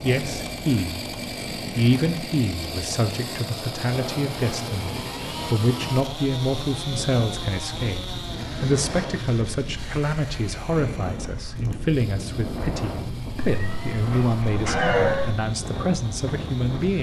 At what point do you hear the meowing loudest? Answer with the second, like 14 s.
15 s.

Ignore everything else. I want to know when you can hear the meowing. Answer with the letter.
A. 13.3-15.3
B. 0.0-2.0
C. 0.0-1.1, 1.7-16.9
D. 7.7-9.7
A.